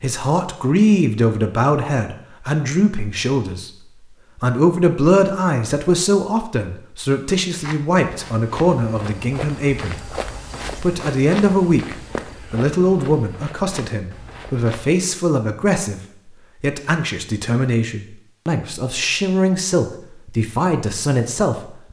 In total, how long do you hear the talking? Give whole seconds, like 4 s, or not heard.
20 s.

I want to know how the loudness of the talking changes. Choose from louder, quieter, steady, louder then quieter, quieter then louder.
steady.